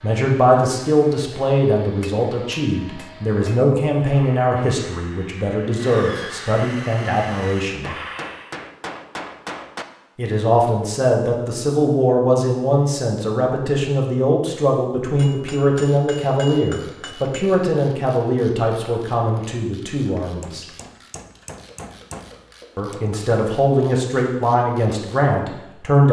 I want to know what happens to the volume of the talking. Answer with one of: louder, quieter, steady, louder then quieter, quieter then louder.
steady.